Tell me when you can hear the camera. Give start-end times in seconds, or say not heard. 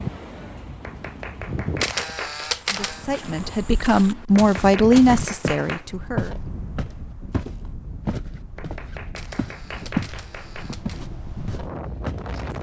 1.8-3.0, 9.2-11.1.